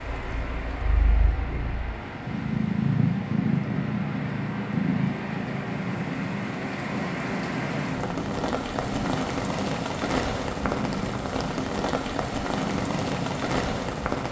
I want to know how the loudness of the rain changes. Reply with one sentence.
The loudness of the rain goes up.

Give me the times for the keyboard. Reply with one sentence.
The keyboard can't be heard in this clip.